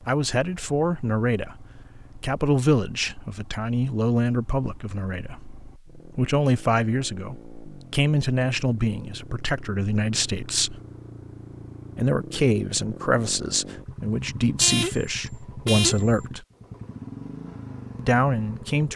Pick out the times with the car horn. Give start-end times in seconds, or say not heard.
14.6-16.2.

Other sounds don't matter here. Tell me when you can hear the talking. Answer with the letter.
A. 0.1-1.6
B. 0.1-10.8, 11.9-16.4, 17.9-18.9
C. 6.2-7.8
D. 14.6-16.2
B.